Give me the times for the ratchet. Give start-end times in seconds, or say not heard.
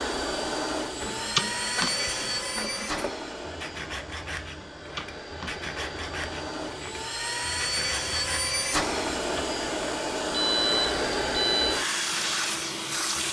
not heard.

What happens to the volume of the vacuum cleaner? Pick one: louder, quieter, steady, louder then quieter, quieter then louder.
quieter then louder.